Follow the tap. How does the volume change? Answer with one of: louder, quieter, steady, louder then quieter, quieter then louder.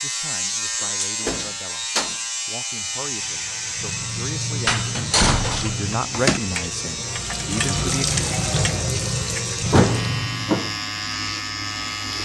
louder.